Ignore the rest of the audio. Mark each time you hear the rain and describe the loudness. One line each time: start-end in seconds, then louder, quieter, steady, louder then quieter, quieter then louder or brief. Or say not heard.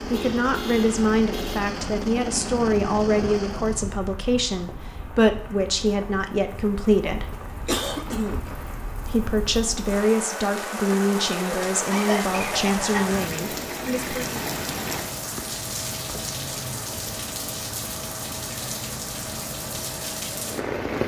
0.0-21.0 louder.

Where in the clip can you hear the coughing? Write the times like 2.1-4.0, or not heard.
7.3-8.4, 10.8-13.2.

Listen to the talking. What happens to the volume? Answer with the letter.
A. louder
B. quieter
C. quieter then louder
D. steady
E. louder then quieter
D.